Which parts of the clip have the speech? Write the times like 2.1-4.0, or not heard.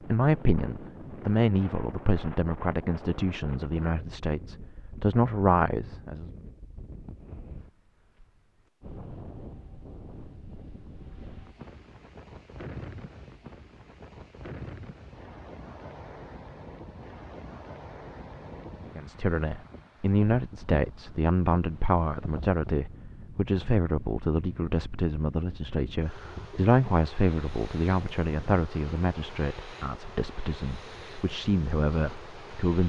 0.1-6.2, 18.9-32.8.